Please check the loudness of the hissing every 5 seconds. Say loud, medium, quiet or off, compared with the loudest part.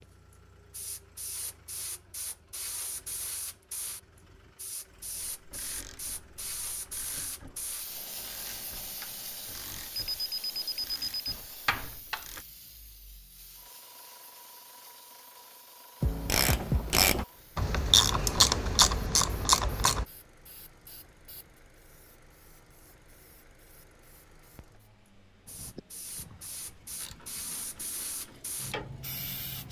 loud, loud, medium, quiet, quiet, loud.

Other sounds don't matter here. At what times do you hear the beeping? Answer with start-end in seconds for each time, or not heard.
9.9-11.3.